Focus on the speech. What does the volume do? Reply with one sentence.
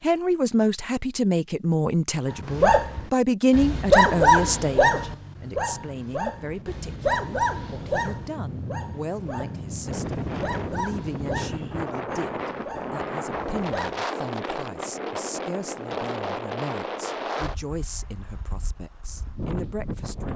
The volume of the speech goes down.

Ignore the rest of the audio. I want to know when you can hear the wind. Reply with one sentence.
The wind can be heard from 5.5 to 20.3 s.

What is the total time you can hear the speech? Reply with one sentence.
The speech can be heard for 20 seconds in total.